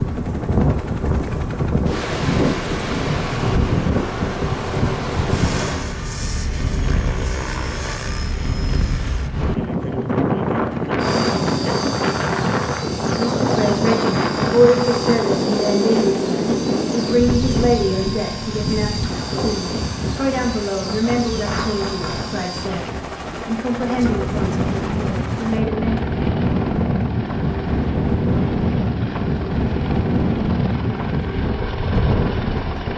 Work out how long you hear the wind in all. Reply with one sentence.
The wind can be heard for 33 seconds in total.